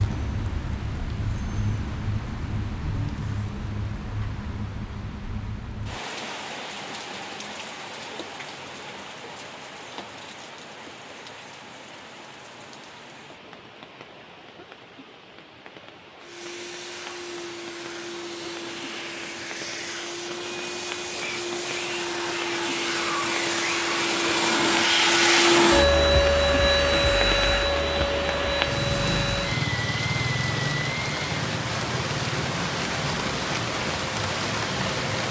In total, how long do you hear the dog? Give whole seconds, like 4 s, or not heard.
not heard.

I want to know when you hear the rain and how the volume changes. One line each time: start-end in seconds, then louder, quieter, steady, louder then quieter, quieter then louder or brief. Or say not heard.
0.0-35.2 quieter then louder.